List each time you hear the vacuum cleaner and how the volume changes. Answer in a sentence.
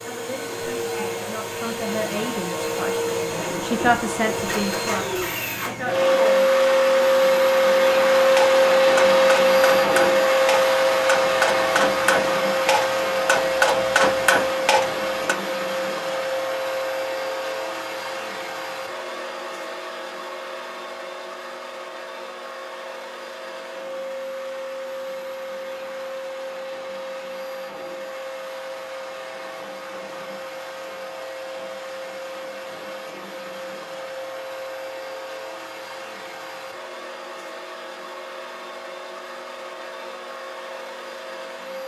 The vacuum cleaner can be heard from 0.0 to 41.8 s, getting quieter.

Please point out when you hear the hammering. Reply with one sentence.
The hammering can be heard from 8.3 to 15.3 s.